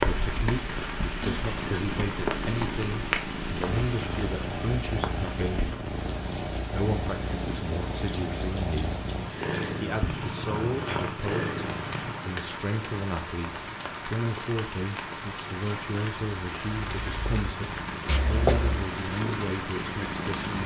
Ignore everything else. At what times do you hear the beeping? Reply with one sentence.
The beeping can be heard from 18.1 to 18.9 s.